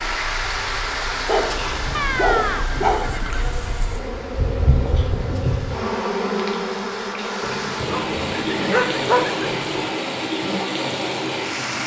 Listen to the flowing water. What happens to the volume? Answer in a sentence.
The volume of the flowing water goes down, then up.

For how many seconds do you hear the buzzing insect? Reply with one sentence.
The buzzing insect can be heard for 9 seconds in total.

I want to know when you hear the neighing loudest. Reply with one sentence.
The volume of the neighing peaks at 2 seconds.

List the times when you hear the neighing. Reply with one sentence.
The neighing can be heard from 1.9 to 3.5 s and from 7.4 to 9.9 s.